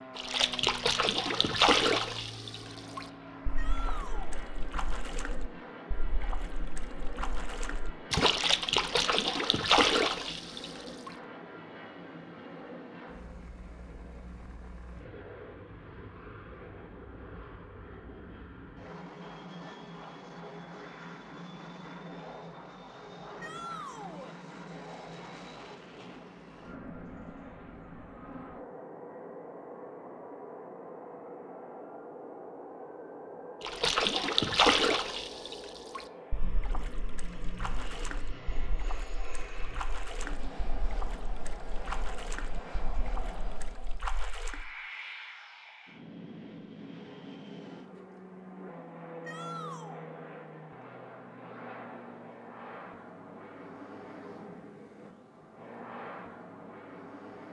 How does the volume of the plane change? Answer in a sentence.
The volume of the plane stays about the same.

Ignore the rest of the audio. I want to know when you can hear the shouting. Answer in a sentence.
You can hear the shouting from 3.5 to 4.4 s, from 23.4 to 24.4 s and from 49.2 to 50.0 s.